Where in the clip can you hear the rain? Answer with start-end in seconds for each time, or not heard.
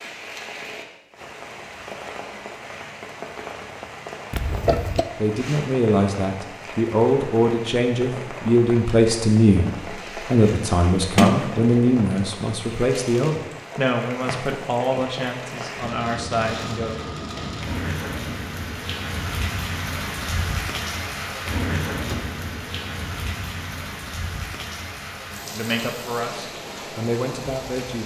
0.0-28.0.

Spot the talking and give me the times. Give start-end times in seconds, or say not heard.
5.2-16.9, 25.5-28.0.